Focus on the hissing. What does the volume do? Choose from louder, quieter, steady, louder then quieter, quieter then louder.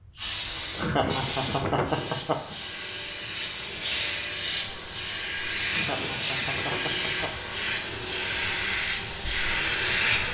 louder.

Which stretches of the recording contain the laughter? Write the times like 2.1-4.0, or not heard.
0.8-2.5, 5.7-7.5.